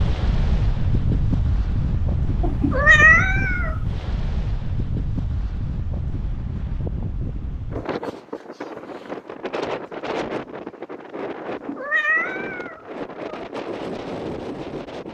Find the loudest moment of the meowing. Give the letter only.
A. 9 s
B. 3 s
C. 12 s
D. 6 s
B.